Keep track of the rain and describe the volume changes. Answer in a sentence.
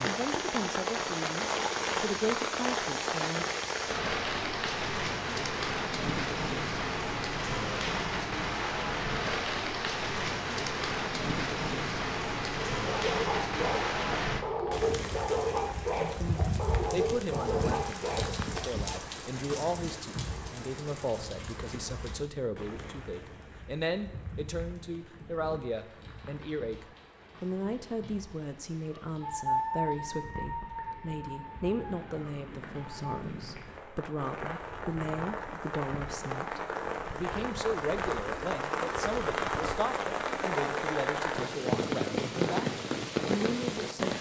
The volume of the rain goes down, then up.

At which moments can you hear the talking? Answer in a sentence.
The talking can be heard from 0.0 to 3.5 s and from 15.9 to 44.1 s.